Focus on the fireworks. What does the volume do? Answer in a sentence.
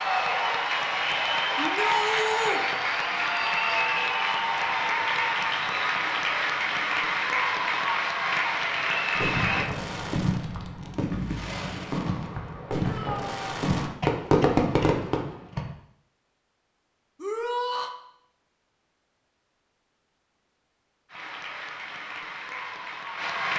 The loudness of the fireworks goes up.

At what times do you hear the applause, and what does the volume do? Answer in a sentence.
You can hear the applause from 0.0 to 9.7 s, at a steady volume; and briefly from 21.1 to 23.5 s.